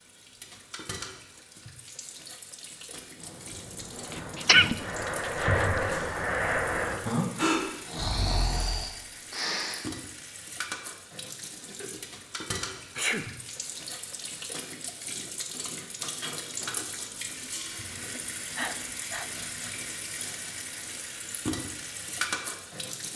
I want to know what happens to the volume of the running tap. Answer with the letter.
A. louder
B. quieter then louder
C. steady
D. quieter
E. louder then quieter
A.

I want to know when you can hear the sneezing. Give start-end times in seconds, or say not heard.
4.3-4.8, 5.4-6.0, 12.9-13.3, 18.4-19.3.